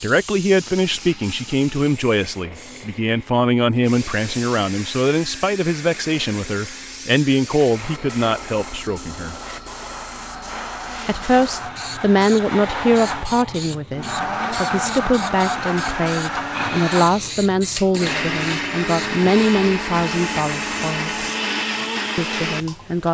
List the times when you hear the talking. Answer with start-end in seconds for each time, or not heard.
0.0-9.3, 11.1-21.2, 22.1-23.0.